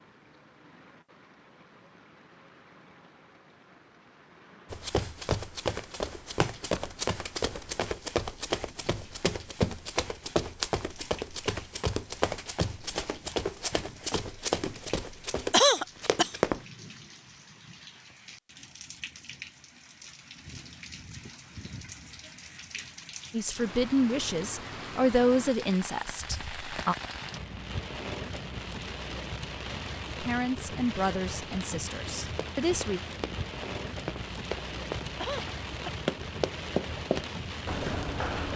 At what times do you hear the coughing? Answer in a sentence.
You can hear the coughing from 15.5 to 16.3 s and from 35.1 to 36.0 s.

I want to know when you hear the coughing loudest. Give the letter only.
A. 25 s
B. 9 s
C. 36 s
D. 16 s
D.